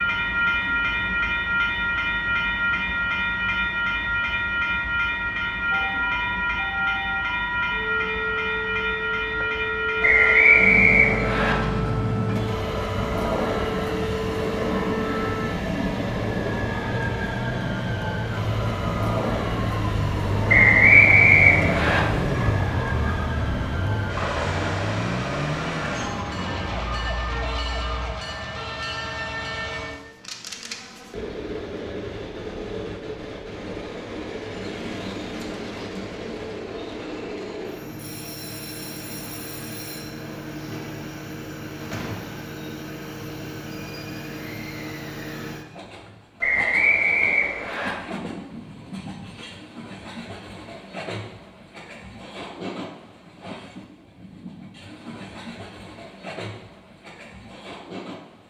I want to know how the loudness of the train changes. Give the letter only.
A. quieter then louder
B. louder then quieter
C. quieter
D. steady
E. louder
C.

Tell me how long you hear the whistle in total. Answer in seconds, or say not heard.
5 s.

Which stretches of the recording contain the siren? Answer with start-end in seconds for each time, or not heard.
5.7-28.1.